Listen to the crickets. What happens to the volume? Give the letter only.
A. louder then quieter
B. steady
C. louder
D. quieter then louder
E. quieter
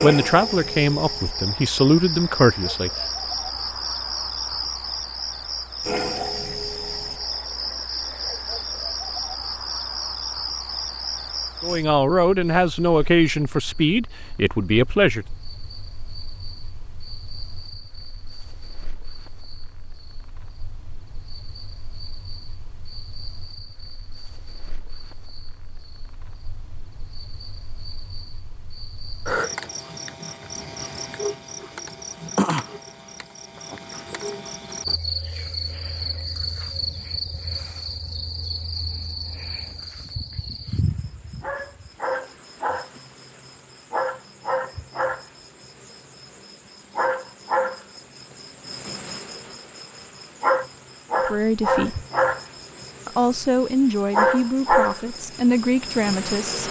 D.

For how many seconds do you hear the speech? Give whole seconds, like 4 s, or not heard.
11 s.